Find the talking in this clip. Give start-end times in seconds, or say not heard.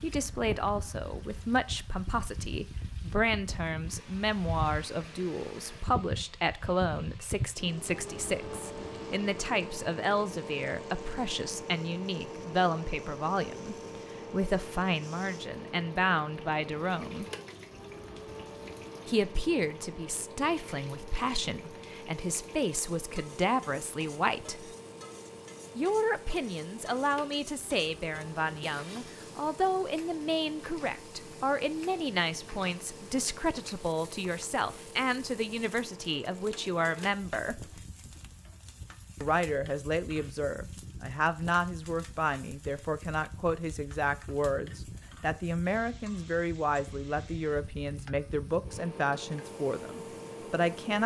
0.0-17.2, 19.1-24.7, 25.8-37.6, 39.2-51.0.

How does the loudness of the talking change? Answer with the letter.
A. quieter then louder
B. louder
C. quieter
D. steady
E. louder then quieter
D.